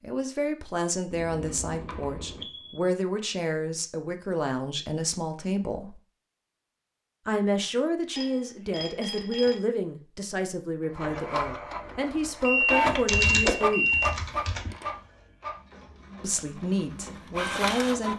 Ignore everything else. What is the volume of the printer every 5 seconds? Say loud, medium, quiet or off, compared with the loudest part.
off, off, loud, medium.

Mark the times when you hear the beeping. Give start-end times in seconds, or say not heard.
1.1-2.8, 8.2-9.6, 12.4-14.1.